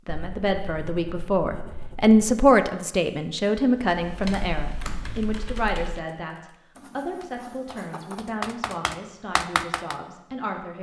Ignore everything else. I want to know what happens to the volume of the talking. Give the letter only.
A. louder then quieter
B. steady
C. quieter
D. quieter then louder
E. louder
C.